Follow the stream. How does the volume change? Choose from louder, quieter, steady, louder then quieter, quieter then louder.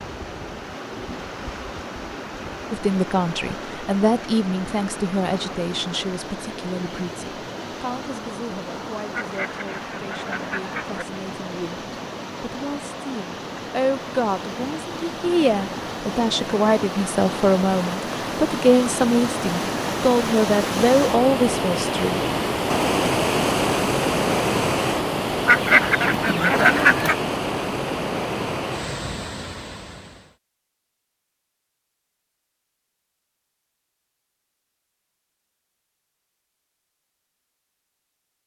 louder.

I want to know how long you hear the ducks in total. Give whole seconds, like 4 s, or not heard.
4 s.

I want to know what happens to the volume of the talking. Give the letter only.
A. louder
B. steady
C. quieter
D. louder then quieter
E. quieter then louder
E.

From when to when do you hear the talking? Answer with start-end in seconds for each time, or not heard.
2.7-22.2.